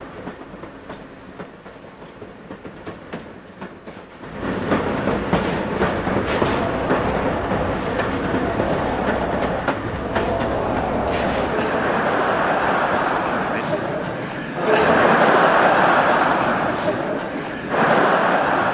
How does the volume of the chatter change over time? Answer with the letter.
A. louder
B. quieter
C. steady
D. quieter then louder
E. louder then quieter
A.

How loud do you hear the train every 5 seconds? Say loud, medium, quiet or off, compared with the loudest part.
medium, loud, medium, medium.